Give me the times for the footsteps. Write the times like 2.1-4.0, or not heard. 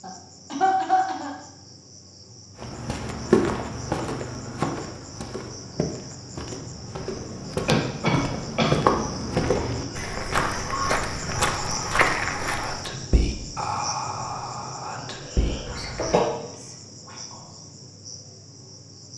2.5-12.9.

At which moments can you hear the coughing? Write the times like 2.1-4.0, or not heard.
0.0-1.3, 7.7-8.8, 15.4-16.2.